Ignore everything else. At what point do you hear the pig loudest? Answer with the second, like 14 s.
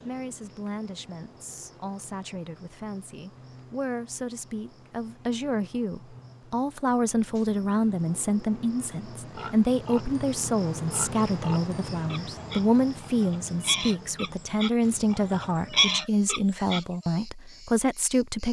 16 s.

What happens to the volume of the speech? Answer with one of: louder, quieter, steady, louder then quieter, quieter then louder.
louder.